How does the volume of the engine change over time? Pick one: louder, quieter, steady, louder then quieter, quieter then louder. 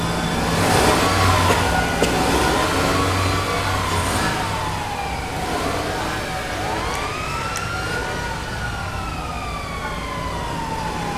quieter.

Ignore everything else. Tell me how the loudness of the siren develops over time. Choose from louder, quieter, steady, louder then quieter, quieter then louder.
steady.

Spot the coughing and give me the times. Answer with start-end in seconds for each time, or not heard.
1.4-2.2.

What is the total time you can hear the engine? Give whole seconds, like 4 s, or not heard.
11 s.